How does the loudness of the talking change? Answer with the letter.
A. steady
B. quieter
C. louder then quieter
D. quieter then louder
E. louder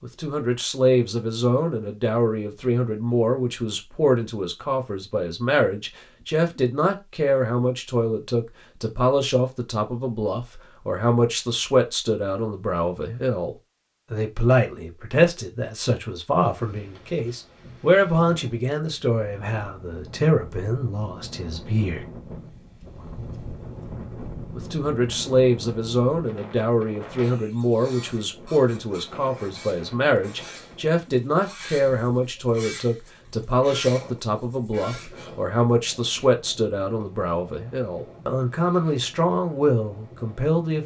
A.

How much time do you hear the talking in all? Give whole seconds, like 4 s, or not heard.
38 s.